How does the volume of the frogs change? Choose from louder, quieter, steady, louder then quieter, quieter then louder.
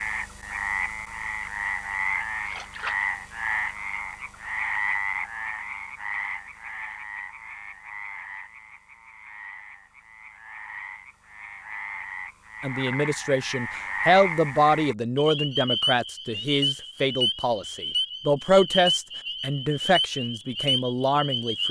quieter then louder.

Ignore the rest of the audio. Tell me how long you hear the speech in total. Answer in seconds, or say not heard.
9 s.